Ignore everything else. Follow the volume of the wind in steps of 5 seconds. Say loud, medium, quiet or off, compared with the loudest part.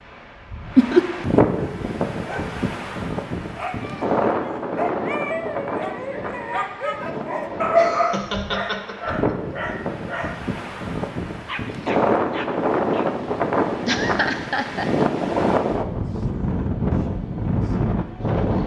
loud, medium, loud, loud.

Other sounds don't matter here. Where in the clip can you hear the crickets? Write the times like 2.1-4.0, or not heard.
not heard.